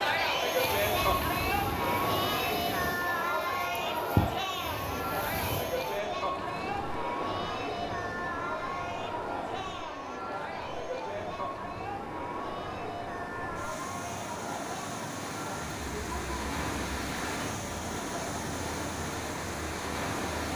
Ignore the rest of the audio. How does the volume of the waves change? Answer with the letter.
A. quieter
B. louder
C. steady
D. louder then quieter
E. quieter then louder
E.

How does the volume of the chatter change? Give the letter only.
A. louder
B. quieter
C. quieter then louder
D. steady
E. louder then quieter
B.